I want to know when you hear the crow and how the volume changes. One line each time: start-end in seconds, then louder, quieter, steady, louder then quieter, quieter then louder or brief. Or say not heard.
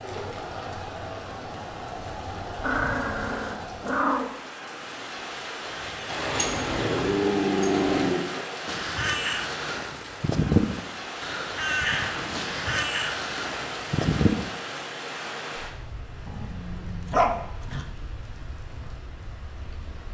8.7-14.4 louder then quieter.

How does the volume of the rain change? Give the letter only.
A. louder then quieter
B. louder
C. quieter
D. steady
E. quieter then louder
C.